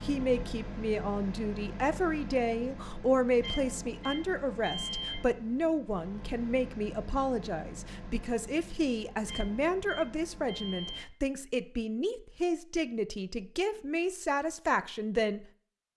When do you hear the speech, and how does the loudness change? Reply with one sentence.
You can hear the speech from 0.0 to 15.4 s, at a steady volume.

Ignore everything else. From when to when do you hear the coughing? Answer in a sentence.
You can't hear the coughing here.